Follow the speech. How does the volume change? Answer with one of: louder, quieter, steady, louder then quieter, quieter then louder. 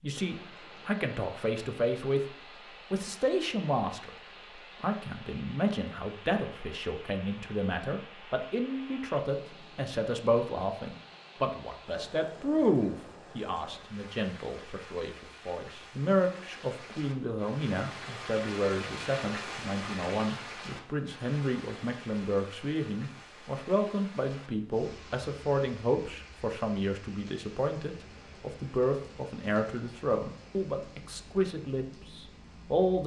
steady.